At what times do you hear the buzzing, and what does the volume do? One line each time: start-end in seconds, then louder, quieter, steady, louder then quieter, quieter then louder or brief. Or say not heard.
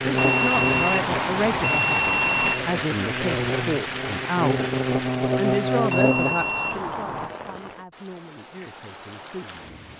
0.0-6.3 quieter then louder.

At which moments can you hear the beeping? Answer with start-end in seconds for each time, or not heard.
0.1-2.6, 5.9-7.3.